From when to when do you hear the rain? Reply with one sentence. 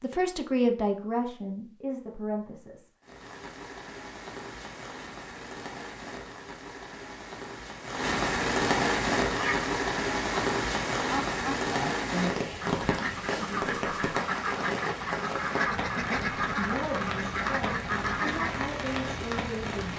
The rain can be heard from 3.0 to 19.9 s.